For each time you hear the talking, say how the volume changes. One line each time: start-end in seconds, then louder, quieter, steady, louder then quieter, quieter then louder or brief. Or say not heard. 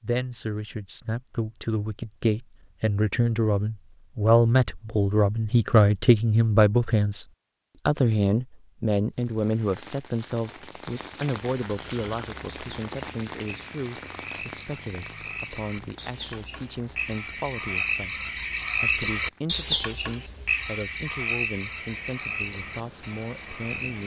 0.0-7.2 louder
7.8-24.0 quieter.